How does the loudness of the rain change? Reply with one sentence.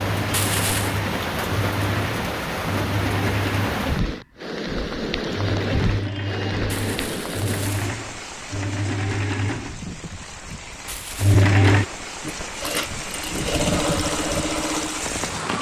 The loudness of the rain goes down, then up.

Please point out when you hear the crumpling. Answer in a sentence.
The crumpling can be heard from 0.3 to 0.9 s, from 6.7 to 7.9 s and from 10.8 to 11.3 s.